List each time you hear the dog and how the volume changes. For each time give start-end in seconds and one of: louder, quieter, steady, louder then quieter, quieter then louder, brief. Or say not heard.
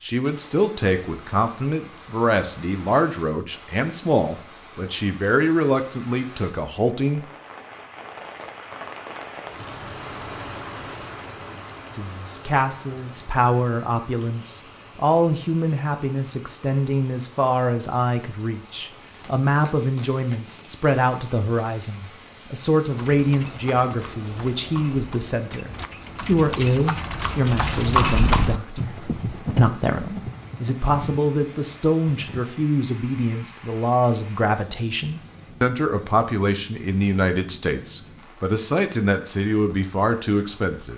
not heard.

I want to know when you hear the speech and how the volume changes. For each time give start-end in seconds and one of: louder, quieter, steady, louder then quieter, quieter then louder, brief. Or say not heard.
0.0-7.2 steady
11.9-40.9 steady.